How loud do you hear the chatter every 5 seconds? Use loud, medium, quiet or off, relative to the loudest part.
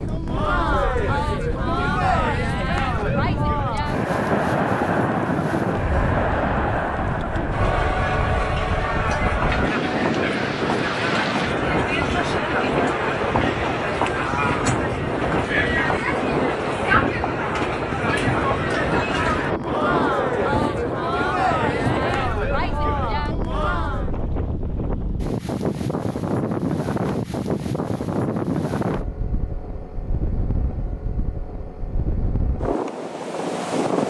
loud, loud, loud, loud, loud, off, off.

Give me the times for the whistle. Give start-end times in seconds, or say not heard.
not heard.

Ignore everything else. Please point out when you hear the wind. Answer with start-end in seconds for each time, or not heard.
0.0-34.0.